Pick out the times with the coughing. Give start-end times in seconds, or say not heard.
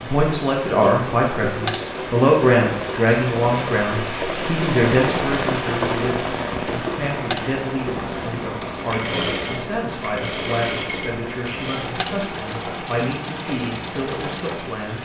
not heard.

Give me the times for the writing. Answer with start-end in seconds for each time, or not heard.
not heard.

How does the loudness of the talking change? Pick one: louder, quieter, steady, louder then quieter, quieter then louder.
quieter.